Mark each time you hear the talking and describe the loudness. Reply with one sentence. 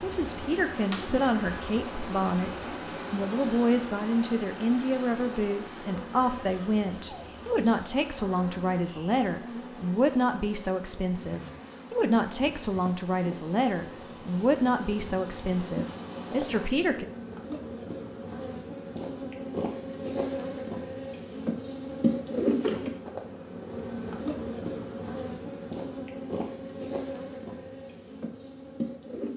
The talking can be heard from 0.0 to 17.1 s, at a steady volume.